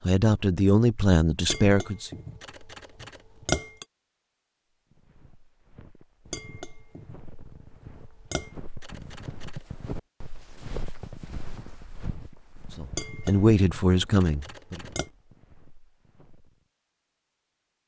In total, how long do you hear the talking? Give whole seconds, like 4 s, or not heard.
4 s.